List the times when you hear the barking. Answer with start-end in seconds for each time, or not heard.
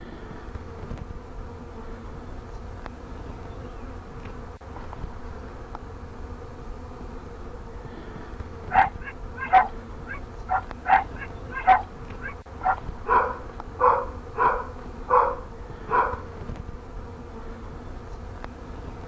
8.7-16.2.